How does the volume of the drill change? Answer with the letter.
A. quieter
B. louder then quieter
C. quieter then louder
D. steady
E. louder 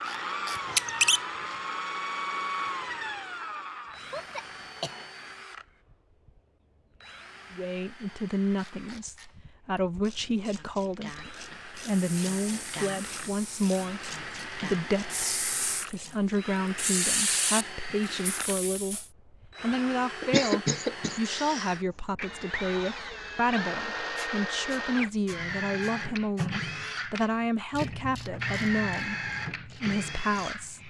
C.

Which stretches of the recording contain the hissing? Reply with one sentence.
You can hear the hissing from 11.8 to 19.1 s.